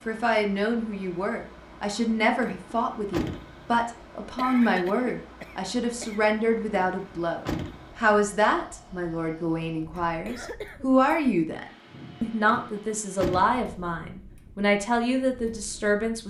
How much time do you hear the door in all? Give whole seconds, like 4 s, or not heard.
4 s.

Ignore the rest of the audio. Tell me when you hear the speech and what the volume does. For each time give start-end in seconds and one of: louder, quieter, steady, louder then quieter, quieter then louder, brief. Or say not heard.
0.1-16.2 steady.